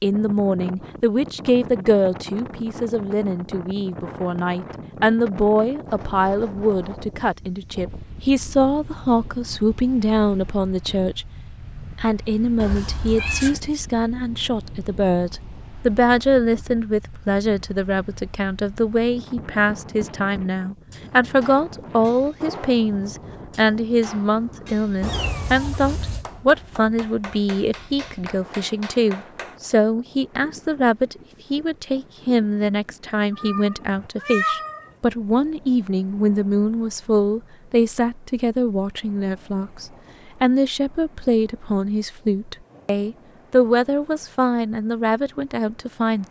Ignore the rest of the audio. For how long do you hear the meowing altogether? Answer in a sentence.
You can hear the meowing for 4 seconds altogether.